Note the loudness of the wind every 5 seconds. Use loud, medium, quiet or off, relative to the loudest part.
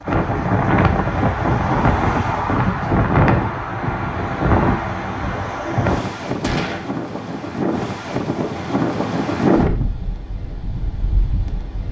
loud, loud, quiet.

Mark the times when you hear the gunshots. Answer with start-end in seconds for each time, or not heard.
6.4-6.9.